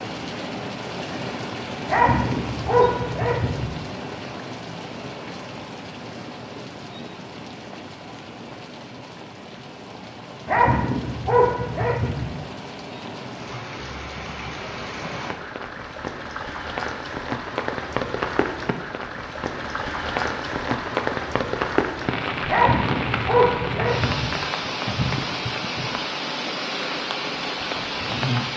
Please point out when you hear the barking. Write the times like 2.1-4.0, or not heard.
1.9-3.8, 10.4-12.3, 22.4-24.4.